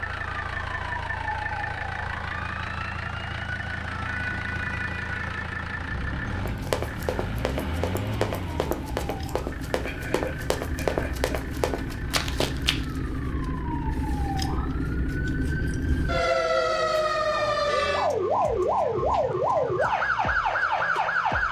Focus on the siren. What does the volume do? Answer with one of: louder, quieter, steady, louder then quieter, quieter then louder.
louder.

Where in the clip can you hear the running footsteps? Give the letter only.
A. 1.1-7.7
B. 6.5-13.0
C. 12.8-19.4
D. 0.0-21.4
B.